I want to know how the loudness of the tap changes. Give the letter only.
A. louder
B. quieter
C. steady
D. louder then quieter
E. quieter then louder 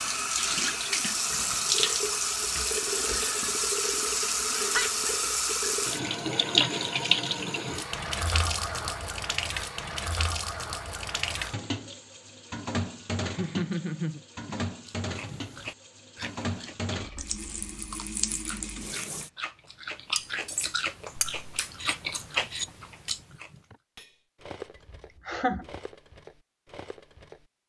B.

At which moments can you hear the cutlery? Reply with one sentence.
You can hear the cutlery from 20.1 to 27.5 s.